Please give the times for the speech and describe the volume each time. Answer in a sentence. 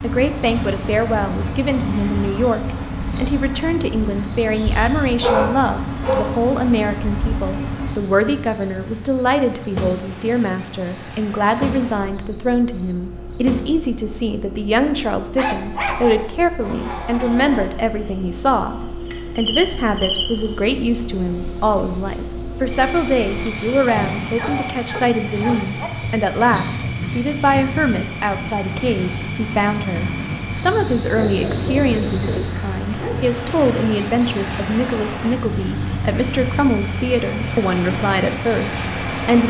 You can hear the speech from 0.0 to 39.4 s, at a steady volume.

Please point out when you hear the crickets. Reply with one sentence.
You can hear the crickets from 0.0 to 39.4 s.